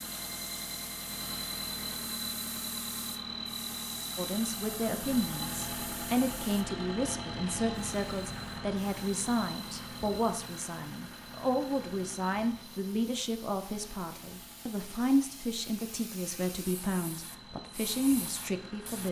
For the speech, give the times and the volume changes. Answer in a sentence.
The speech can be heard from 4.2 to 19.0 s, at a steady volume.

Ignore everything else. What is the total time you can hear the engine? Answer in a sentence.
The engine can be heard for 19 seconds in total.